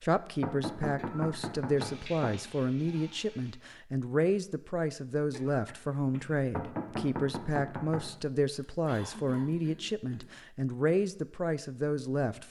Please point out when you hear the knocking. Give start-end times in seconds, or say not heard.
0.4-2.3, 6.5-8.1.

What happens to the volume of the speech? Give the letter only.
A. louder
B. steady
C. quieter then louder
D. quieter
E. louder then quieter
B.